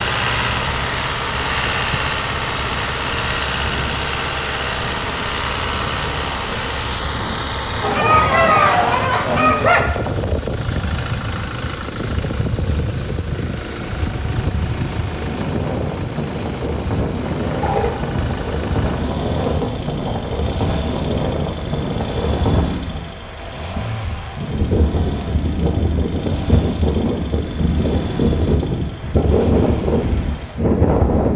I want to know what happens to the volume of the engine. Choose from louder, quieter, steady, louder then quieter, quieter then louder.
quieter.